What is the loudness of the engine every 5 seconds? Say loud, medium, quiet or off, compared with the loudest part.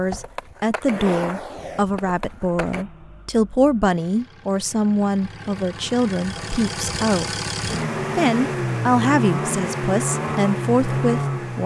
quiet, loud, loud.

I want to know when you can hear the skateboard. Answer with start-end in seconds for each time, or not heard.
0.0-2.9.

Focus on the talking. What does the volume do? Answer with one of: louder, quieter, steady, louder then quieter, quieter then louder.
steady.